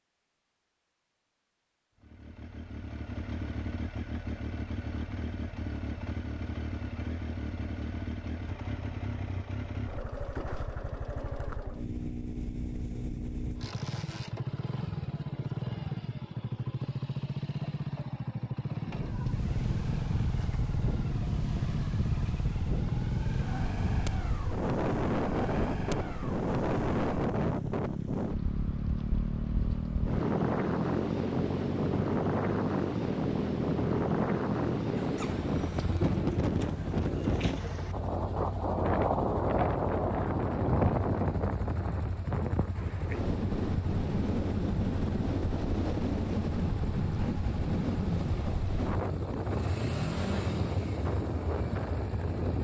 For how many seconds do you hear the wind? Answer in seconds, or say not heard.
34 s.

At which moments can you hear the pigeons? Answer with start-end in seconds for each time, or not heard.
35.7-37.9.